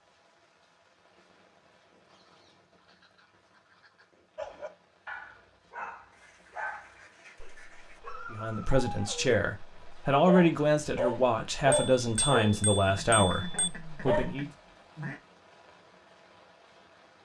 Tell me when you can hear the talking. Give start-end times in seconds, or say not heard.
8.3-14.4.